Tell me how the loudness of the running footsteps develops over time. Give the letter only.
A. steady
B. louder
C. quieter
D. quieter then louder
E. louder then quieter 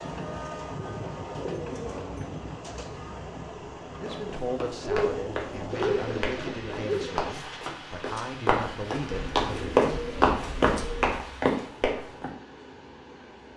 B.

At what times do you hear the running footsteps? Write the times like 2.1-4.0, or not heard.
4.0-12.3.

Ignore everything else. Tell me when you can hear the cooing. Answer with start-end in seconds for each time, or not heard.
1.2-2.5, 4.8-7.3, 9.1-11.3.